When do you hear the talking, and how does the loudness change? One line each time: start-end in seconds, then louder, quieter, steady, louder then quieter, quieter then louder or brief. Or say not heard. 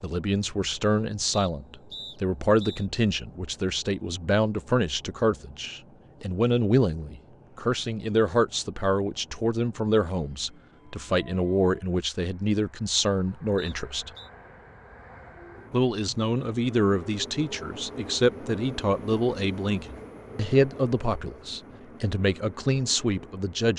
0.0-14.1 steady
15.7-23.7 steady.